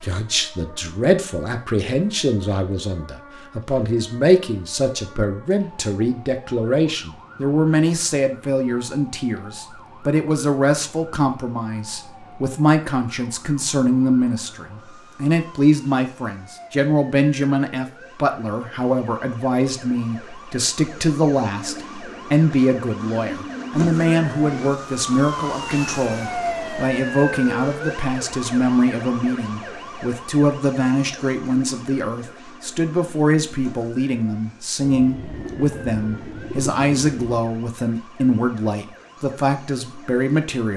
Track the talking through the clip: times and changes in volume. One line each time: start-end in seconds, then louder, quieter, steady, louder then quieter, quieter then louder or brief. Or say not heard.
0.0-40.7 steady.